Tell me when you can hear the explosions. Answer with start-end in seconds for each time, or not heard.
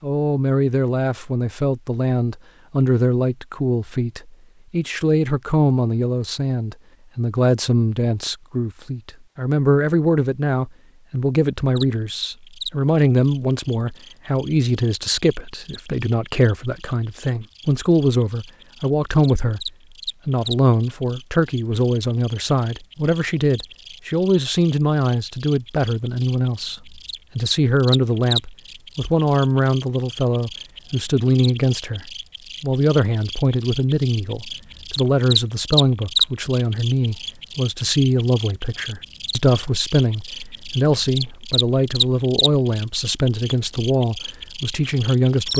not heard.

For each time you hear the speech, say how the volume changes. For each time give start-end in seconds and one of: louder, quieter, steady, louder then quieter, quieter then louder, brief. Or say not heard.
0.0-45.5 steady.